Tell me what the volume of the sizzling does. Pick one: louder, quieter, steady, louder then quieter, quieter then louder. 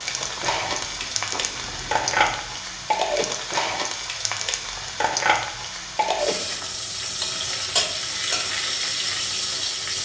steady.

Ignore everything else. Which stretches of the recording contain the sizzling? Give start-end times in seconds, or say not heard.
0.0-10.0.